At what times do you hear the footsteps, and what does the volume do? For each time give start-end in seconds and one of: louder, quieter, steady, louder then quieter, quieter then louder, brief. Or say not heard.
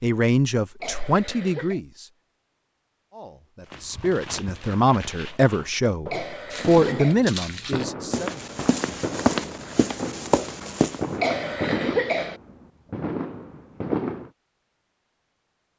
3.7-11.1 louder.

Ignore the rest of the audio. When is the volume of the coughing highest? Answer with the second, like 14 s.
12 s.